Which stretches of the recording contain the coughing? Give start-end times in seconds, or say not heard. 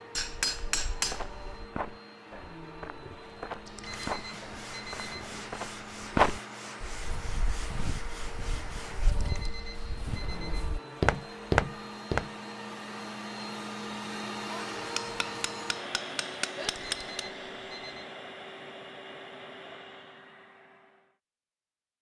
not heard.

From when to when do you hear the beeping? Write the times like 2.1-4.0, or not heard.
3.6-5.5, 9.1-10.8, 16.6-18.1.